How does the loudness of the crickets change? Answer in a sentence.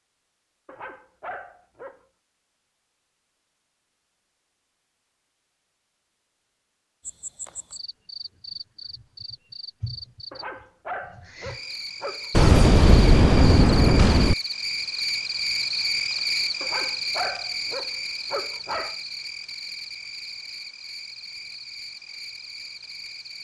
The volume of the crickets goes up, then down.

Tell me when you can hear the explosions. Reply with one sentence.
The explosions can be heard from 12.3 to 14.3 s.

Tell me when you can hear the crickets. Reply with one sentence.
The crickets can be heard from 7.0 to 23.3 s.